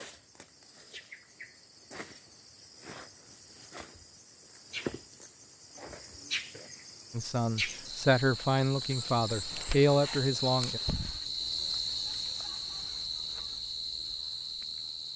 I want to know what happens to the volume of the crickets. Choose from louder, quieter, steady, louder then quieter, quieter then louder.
louder.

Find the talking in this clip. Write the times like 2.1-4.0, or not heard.
7.1-10.8.